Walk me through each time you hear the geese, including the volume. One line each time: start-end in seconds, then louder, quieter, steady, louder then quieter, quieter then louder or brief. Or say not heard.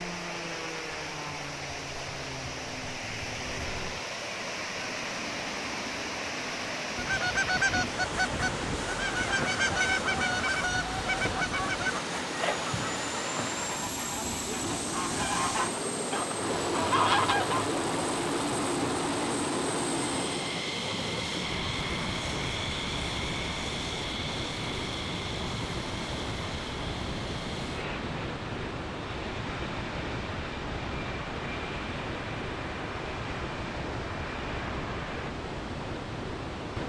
7.0-17.6 quieter then louder.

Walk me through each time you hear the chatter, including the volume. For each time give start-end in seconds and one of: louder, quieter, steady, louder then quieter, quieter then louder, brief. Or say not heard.
not heard.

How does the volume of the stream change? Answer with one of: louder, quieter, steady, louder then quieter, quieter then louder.
steady.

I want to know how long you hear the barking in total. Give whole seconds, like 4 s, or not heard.
not heard.